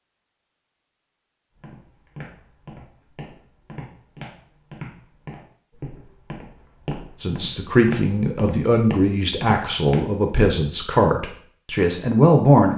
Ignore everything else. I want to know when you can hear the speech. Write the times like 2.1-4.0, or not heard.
7.2-12.7.